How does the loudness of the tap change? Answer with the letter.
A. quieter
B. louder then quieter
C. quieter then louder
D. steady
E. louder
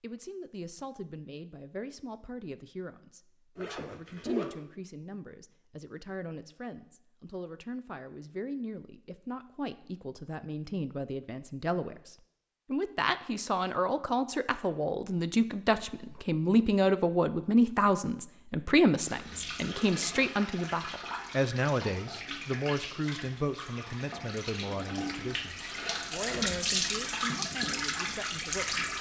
E.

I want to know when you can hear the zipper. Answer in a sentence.
You can hear the zipper from 3.5 to 4.5 s and from 25.3 to 26.4 s.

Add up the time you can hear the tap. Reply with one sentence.
You can hear the tap for 10 seconds altogether.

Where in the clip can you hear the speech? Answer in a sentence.
You can hear the speech from 0.0 to 28.9 s.